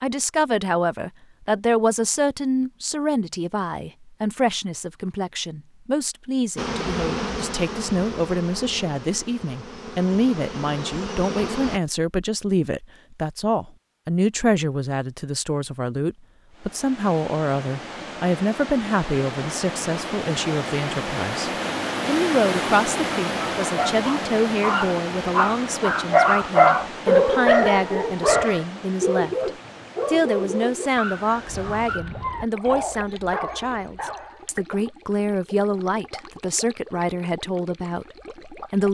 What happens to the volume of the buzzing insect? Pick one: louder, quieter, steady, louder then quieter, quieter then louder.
quieter then louder.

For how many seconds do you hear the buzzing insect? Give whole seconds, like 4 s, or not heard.
5 s.